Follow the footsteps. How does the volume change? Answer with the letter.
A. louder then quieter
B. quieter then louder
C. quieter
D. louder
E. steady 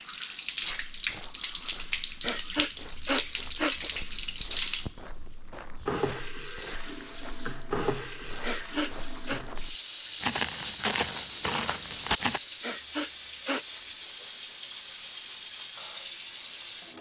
D.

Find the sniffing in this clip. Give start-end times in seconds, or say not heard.
2.2-3.8, 8.4-9.4, 12.6-13.7.